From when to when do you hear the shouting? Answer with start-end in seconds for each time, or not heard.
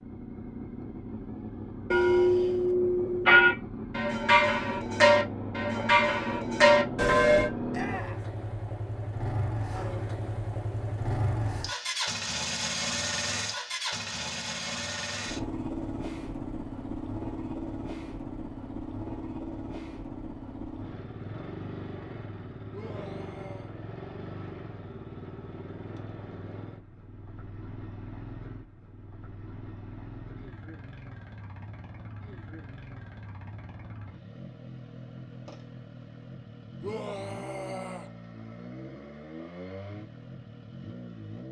7.7-8.2, 22.7-23.7, 36.8-38.1.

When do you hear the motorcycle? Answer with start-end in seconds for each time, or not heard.
0.0-41.4.